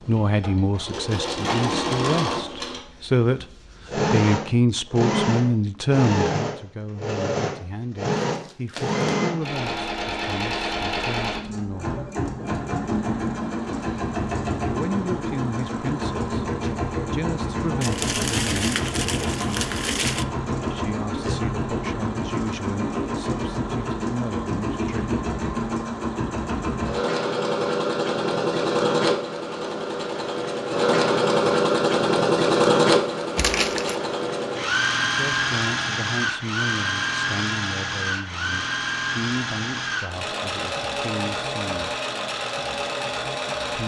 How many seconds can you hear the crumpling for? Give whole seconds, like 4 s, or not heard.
4 s.